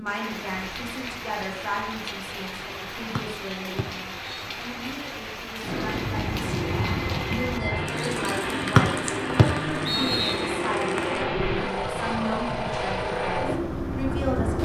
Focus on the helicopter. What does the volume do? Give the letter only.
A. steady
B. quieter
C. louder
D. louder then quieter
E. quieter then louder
A.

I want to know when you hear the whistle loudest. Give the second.
9 s.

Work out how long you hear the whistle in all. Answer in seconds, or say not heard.
3 s.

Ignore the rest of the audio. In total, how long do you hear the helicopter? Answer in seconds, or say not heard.
9 s.